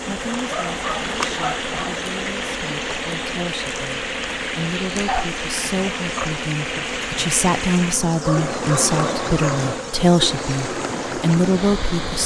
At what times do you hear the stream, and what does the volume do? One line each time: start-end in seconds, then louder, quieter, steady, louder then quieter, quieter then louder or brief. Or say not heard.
0.0-12.2 steady.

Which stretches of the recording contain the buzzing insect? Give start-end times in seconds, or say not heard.
0.0-12.2.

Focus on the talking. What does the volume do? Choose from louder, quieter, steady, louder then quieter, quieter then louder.
louder.